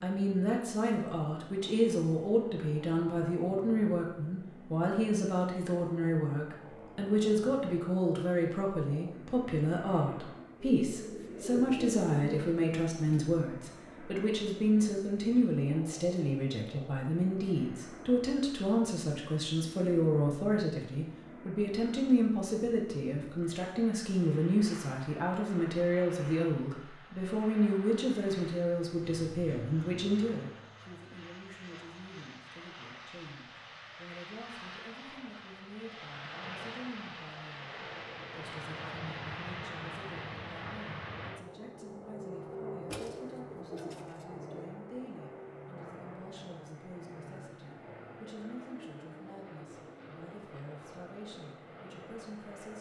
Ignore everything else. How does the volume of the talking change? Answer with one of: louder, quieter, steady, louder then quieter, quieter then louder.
quieter.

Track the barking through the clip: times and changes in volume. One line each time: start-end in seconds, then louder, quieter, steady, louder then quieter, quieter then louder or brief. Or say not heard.
not heard.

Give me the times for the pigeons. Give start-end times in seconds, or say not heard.
10.6-13.3, 42.9-44.7.